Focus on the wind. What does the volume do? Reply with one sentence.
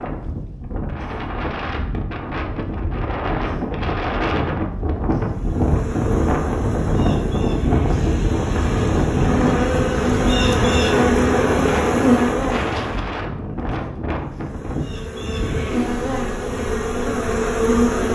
The volume of the wind goes up, then down.